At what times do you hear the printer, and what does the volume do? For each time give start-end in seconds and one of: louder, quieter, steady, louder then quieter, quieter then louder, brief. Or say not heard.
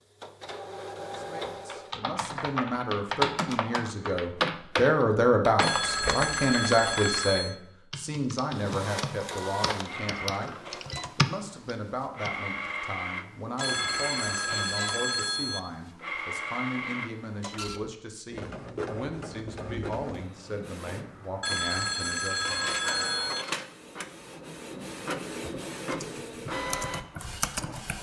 0.0-1.9 brief
8.6-27.9 steady.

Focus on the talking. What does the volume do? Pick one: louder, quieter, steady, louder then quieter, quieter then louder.
quieter.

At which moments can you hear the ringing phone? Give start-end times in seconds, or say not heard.
5.6-7.5, 13.6-15.6, 21.4-23.4.